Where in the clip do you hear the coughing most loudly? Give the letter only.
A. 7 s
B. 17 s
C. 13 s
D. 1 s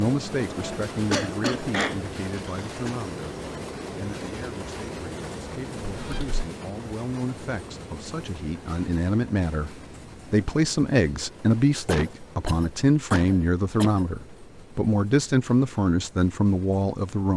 D.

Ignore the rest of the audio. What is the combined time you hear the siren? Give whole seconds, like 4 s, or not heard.
not heard.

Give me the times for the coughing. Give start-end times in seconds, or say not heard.
0.6-3.0, 5.8-6.5, 11.8-14.1.